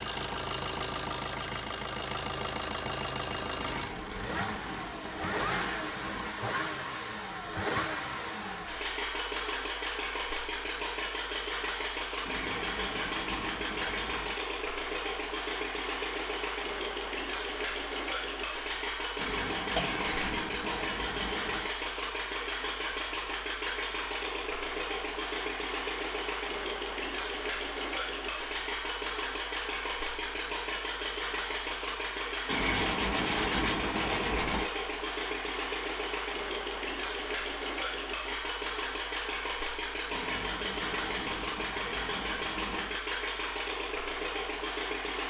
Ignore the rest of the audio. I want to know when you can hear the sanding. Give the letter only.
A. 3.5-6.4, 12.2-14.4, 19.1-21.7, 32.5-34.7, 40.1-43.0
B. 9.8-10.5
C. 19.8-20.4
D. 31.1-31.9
A.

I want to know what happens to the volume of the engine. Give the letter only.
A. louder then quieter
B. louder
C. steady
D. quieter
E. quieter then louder
C.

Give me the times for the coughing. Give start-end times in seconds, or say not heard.
19.8-20.4.